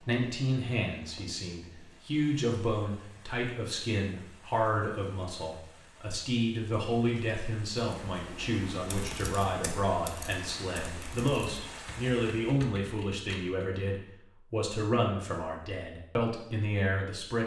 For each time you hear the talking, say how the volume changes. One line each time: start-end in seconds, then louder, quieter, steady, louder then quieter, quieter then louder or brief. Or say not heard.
0.0-17.4 steady.